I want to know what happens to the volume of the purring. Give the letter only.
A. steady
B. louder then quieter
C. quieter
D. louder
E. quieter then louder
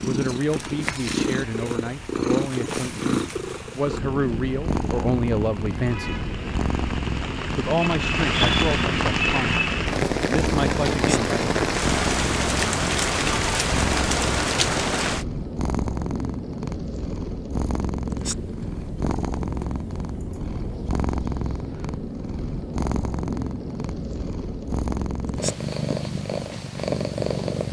A.